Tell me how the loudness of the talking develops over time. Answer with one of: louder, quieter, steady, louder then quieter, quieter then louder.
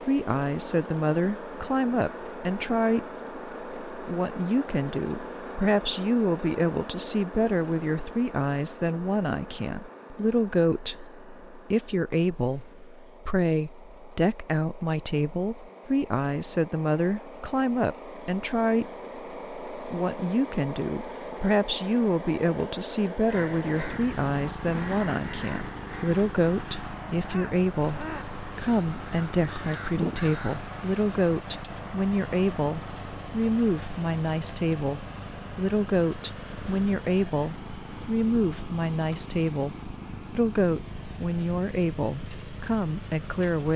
steady.